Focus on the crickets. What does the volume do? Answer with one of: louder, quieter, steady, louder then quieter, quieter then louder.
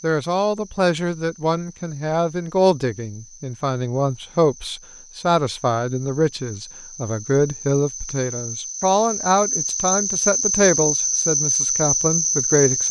louder.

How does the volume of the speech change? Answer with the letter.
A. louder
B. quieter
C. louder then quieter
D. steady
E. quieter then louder
D.